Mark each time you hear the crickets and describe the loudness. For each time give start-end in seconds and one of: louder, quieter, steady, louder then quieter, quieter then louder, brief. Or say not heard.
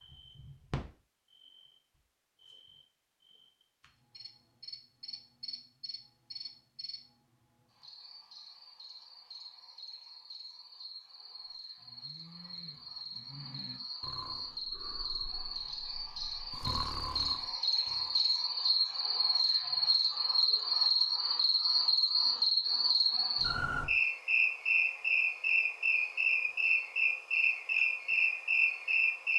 0.0-29.3 louder.